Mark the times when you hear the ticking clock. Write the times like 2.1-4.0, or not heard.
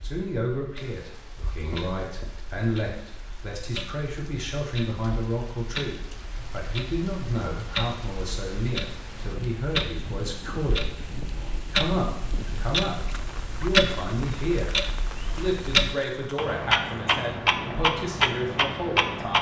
0.0-19.3.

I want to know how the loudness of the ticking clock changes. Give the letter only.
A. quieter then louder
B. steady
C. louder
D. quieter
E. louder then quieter
C.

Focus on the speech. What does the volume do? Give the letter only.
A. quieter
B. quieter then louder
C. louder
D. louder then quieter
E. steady
E.